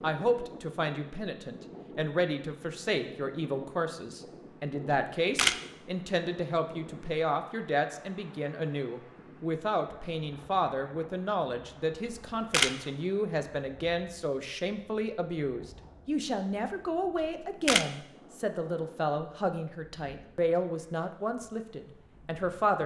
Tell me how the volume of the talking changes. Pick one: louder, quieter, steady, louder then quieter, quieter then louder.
steady.